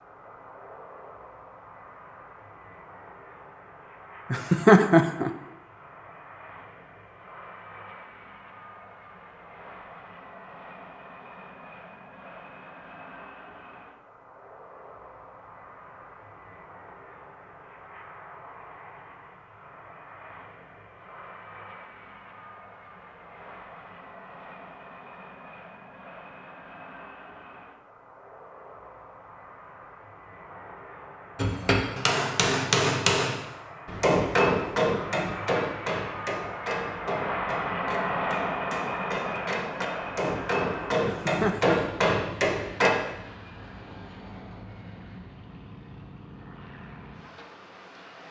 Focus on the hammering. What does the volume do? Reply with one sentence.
The loudness of the hammering goes down, then up.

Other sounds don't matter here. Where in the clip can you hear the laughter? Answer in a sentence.
You can hear the laughter from 4.3 to 5.3 s and from 41.0 to 42.0 s.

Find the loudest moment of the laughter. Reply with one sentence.
The volume of the laughter peaks at 5 seconds.